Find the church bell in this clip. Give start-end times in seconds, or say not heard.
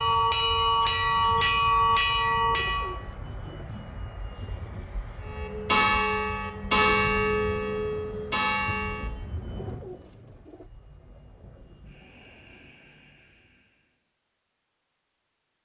0.0-3.0, 5.2-9.1.